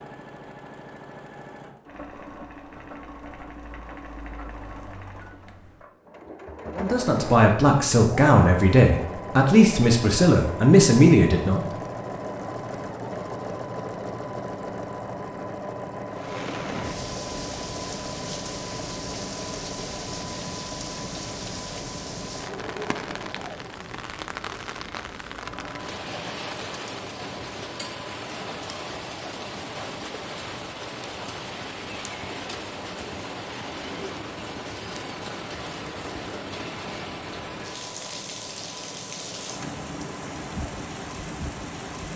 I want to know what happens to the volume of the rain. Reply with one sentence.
The loudness of the rain stays about the same.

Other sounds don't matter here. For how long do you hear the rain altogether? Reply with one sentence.
The rain can be heard for 26 seconds in total.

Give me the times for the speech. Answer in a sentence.
The speech can be heard from 6.8 to 11.6 s.